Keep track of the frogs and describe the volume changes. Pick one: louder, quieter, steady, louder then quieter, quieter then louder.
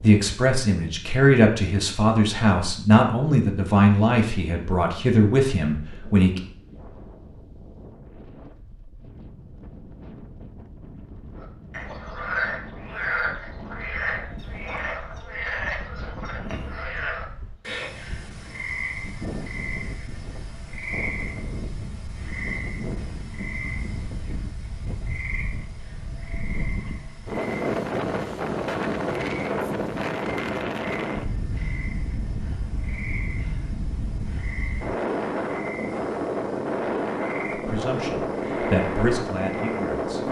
quieter.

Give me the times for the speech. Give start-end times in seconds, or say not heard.
0.0-6.4, 37.5-40.2.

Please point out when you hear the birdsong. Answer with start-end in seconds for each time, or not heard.
not heard.